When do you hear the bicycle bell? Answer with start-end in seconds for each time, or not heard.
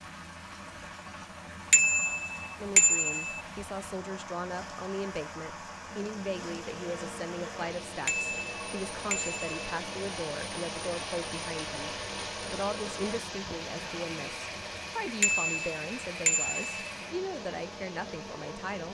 1.7-3.4, 8.1-9.7, 15.2-16.9.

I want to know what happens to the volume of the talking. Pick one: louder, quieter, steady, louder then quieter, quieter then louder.
steady.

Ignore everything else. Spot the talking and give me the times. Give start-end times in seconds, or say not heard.
2.5-18.8.